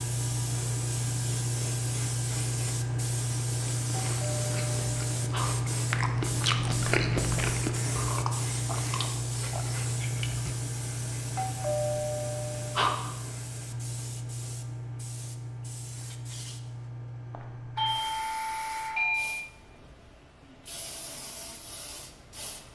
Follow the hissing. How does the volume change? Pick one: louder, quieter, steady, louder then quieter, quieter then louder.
quieter.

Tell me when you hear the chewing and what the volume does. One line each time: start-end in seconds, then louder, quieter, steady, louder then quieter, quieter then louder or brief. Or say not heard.
3.9-10.6 louder then quieter.